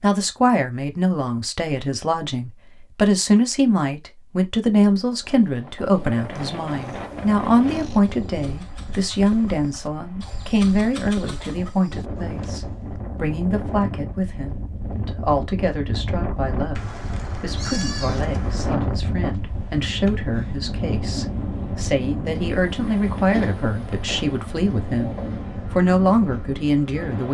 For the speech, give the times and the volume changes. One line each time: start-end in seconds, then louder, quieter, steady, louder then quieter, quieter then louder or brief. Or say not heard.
0.0-27.2 quieter then louder.